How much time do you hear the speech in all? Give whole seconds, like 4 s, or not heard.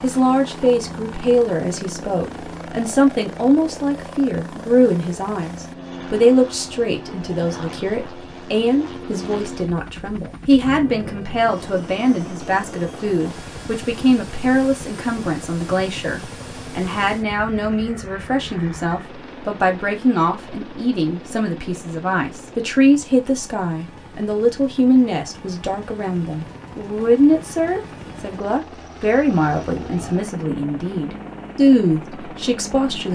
33 s.